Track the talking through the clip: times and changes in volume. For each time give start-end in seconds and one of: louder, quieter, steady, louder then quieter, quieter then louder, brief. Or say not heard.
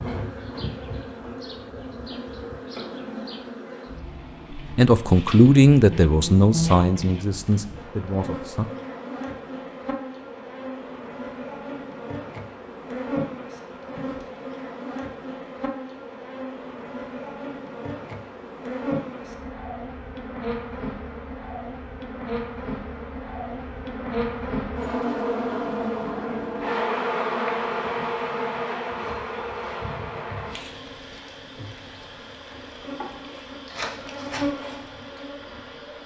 4.5-8.7 quieter.